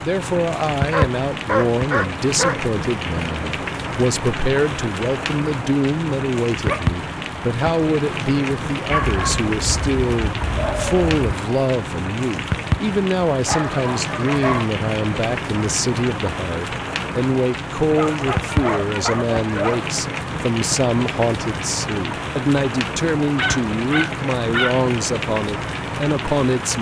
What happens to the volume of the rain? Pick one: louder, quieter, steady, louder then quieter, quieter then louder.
steady.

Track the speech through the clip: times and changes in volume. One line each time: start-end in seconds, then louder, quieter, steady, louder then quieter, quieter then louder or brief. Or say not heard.
0.0-26.7 steady.